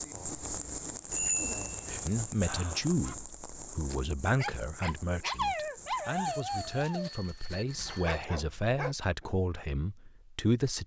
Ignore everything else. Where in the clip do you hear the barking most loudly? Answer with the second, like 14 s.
5 s.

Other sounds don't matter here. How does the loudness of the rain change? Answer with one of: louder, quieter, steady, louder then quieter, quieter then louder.
quieter.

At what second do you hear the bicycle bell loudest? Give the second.
1 s.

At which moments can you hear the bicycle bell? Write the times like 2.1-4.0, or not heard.
0.1-2.0, 6.2-8.2.